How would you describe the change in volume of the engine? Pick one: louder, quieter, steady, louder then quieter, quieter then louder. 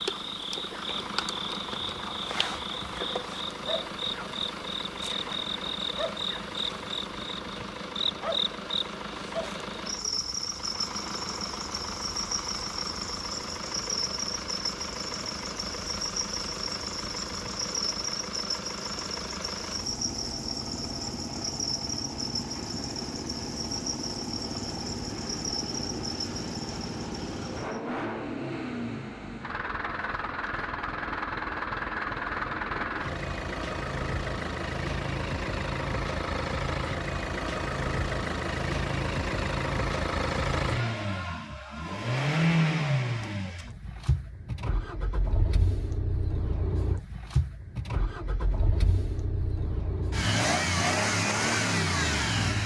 louder.